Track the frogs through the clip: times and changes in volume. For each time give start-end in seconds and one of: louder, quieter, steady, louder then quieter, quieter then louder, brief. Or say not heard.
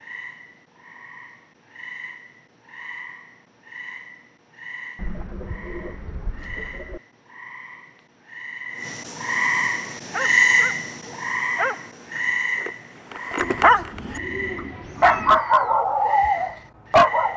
0.0-17.3 louder then quieter.